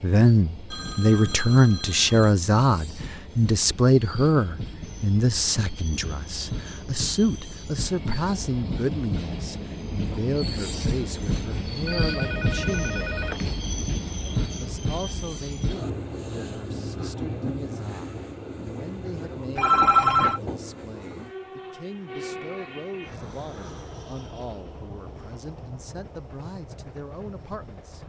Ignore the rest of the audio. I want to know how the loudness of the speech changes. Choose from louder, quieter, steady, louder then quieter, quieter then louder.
quieter.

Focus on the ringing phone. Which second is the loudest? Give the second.
20 s.